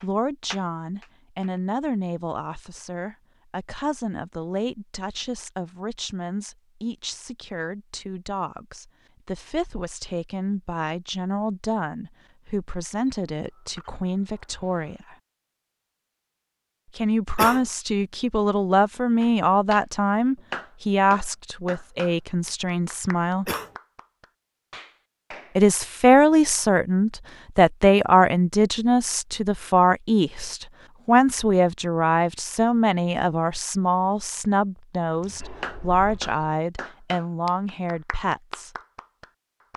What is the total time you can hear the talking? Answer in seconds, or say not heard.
35 s.